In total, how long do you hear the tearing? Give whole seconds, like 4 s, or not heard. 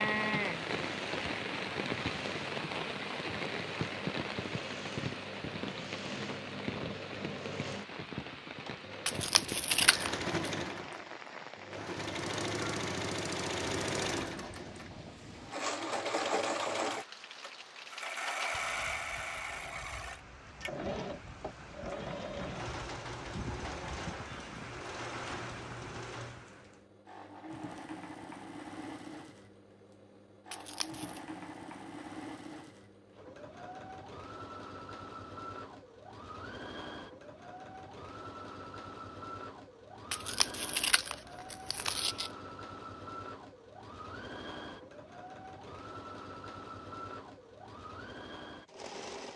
4 s.